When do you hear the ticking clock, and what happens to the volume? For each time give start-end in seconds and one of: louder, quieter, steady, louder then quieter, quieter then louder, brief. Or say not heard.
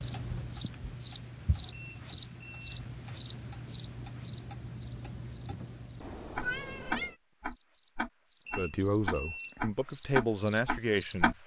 0.0-11.3 louder.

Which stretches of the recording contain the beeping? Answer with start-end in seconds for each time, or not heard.
1.7-2.9, 8.4-9.6.